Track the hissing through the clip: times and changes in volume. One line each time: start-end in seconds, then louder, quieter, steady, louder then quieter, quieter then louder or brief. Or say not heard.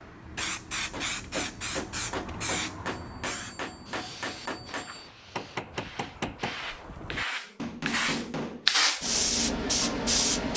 0.2-10.5 quieter then louder.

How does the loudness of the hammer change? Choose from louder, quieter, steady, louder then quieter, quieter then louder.
steady.